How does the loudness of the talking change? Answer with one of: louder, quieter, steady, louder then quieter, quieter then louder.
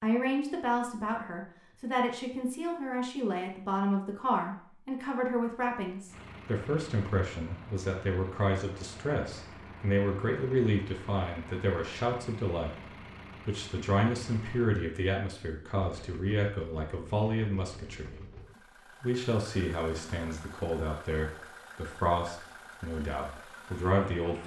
steady.